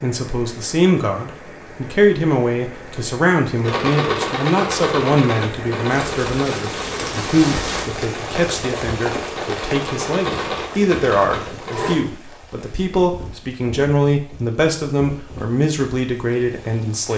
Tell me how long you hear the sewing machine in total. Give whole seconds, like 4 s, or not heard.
8 s.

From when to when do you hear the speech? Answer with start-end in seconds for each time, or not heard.
0.0-17.1.